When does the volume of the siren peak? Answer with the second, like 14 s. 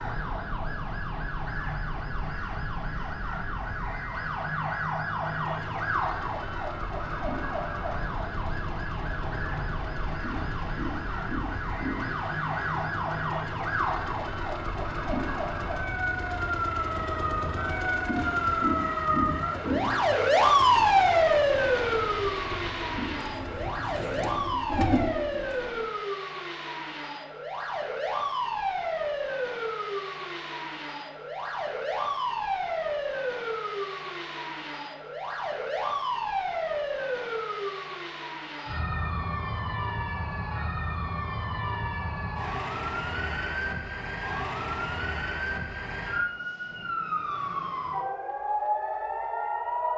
21 s.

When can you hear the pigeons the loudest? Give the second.
25 s.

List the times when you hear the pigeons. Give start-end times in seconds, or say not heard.
23.1-25.9.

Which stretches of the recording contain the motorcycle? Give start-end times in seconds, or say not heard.
5.2-24.6.